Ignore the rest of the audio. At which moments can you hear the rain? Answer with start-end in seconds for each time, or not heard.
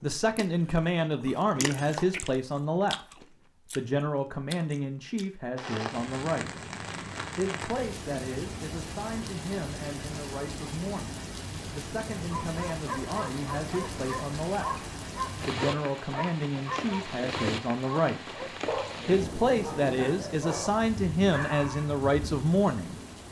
5.5-23.2.